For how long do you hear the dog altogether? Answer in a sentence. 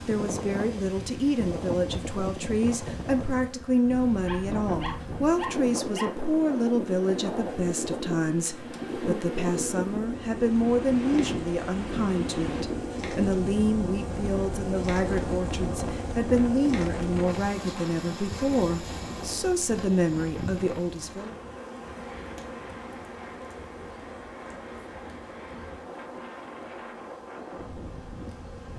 The dog can be heard for 2 seconds in total.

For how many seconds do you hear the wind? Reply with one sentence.
The wind can be heard for 29 seconds in total.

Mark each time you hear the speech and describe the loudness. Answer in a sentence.
You can hear the speech from 0.1 to 21.4 s, at a steady volume.